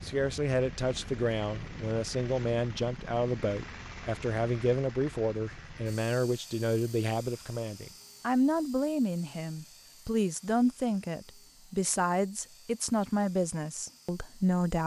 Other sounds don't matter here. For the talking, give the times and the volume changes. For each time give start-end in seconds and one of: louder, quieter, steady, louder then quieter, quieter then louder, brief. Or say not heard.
0.0-14.8 steady.